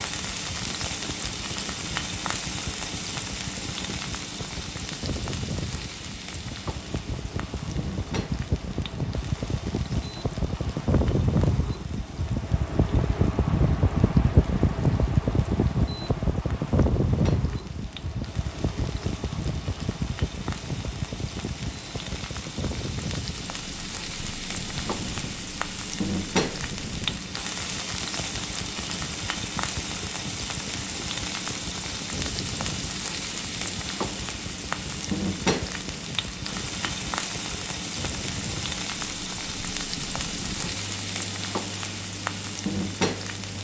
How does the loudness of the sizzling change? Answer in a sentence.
The volume of the sizzling goes down, then up.